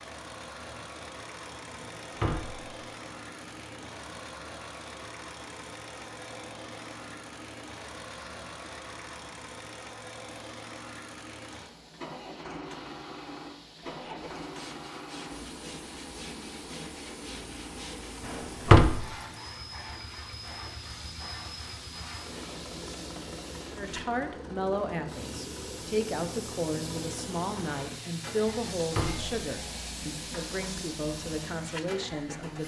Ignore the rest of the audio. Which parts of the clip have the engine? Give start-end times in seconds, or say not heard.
0.0-32.6.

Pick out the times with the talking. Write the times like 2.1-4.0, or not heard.
23.8-32.6.